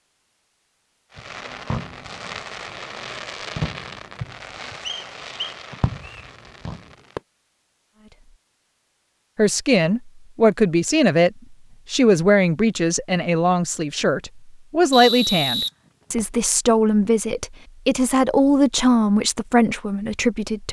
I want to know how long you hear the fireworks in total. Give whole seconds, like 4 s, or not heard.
6 s.